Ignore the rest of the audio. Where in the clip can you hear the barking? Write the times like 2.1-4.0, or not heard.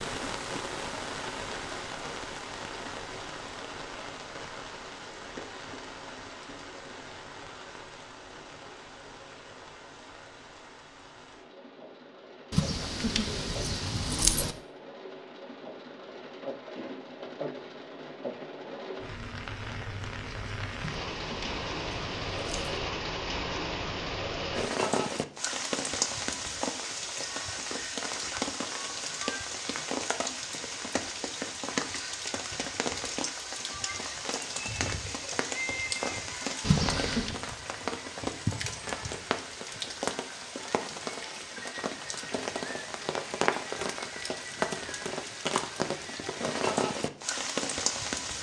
not heard.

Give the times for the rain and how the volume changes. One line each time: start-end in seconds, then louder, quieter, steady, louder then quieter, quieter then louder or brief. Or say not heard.
0.0-48.3 louder.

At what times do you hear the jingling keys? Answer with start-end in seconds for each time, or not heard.
12.5-14.6, 20.8-22.8, 36.6-37.4.